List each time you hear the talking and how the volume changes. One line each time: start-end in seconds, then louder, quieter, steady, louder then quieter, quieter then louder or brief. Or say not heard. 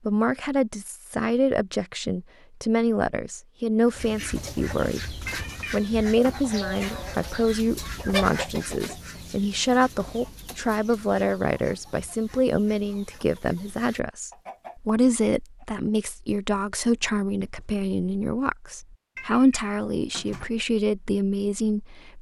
0.1-22.1 steady.